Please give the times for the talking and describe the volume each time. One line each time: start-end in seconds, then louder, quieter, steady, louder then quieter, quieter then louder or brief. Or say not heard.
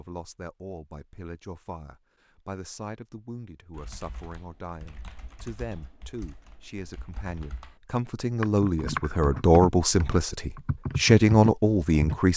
0.0-12.3 louder.